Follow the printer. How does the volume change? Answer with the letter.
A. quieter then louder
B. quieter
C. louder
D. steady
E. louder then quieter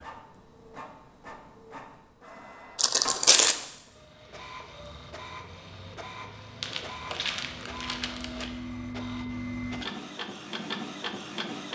C.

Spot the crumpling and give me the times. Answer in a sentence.
You can hear the crumpling from 2.8 to 3.5 s and from 6.6 to 8.5 s.